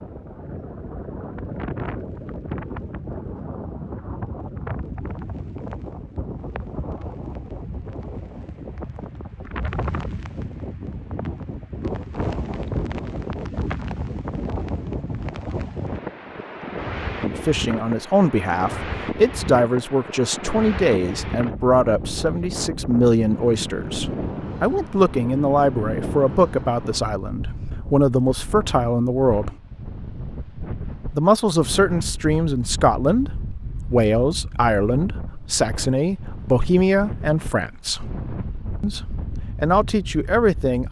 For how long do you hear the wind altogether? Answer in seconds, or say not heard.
41 s.